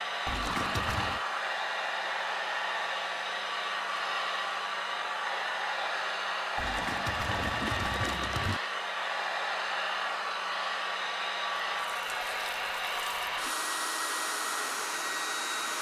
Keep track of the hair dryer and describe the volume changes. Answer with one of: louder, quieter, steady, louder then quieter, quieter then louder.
steady.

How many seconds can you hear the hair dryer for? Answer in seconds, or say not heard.
16 s.